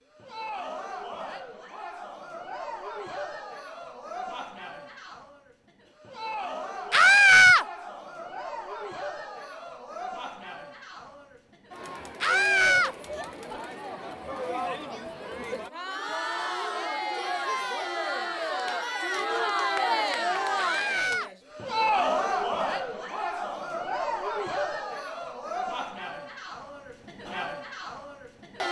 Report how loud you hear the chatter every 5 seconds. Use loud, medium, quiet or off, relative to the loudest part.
medium, medium, medium, loud, loud, medium.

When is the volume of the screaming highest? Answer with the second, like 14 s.
7 s.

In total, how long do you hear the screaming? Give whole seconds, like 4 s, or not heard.
2 s.